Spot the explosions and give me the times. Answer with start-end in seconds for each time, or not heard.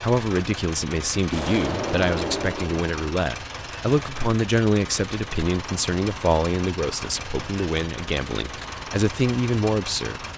1.3-2.9.